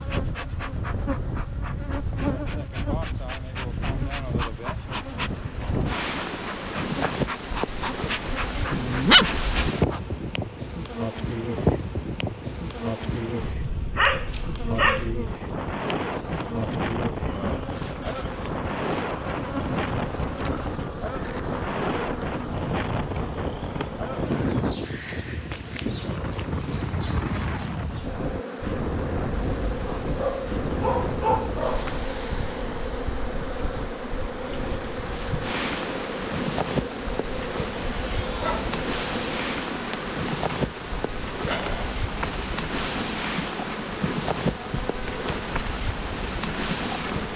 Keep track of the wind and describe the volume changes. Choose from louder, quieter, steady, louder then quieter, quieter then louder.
steady.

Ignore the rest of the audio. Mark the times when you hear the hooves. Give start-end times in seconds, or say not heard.
not heard.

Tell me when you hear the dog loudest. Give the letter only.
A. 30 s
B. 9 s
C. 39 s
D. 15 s
B.